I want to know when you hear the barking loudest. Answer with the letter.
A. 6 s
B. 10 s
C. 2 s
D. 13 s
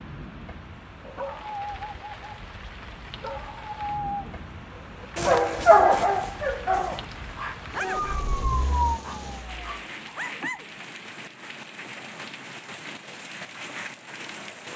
A.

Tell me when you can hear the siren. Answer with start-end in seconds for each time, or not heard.
7.8-9.8.